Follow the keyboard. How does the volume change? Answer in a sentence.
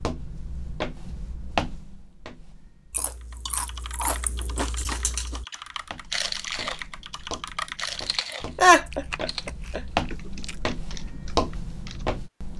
The loudness of the keyboard goes up, then down.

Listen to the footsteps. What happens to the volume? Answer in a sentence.
The volume of the footsteps goes down, then up.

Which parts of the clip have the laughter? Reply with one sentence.
You can hear the laughter from 8.6 to 9.8 s.